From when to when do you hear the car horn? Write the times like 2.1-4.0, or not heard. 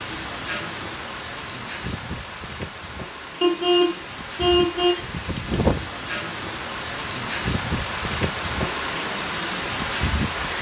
3.4-5.0.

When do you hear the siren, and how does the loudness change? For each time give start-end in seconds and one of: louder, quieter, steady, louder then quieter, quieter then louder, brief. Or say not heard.
not heard.